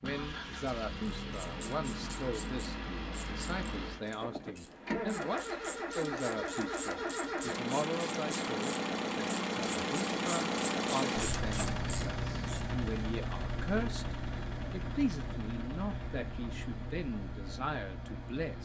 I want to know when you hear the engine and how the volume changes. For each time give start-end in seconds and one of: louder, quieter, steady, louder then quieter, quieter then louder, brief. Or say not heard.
0.0-18.5 louder then quieter.